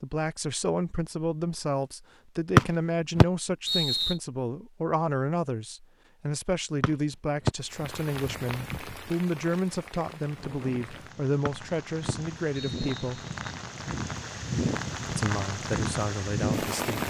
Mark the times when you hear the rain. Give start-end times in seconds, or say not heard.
7.7-17.0.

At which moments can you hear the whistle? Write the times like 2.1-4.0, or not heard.
2.5-4.2, 6.8-7.5, 11.4-13.3.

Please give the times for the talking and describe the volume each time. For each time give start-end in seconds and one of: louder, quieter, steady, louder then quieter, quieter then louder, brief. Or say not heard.
0.0-13.2 steady
15.1-17.0 brief.